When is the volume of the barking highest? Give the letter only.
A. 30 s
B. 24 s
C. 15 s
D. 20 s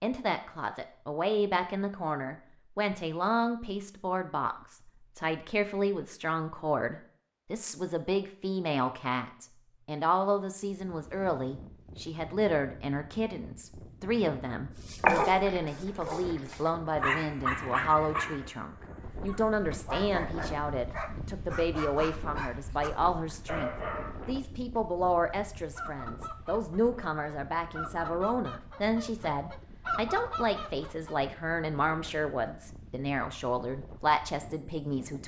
C.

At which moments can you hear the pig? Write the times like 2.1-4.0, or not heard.
not heard.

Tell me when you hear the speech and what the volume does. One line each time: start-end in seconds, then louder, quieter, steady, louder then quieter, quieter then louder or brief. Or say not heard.
0.0-35.2 steady.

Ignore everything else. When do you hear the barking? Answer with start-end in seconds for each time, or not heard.
14.8-24.2.